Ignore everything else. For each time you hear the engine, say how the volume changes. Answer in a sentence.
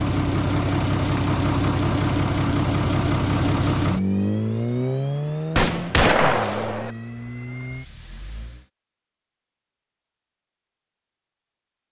The engine can be heard from 0.0 to 8.7 s, getting quieter.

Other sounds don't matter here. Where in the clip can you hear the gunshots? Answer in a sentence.
You can hear the gunshots from 5.5 to 6.9 s.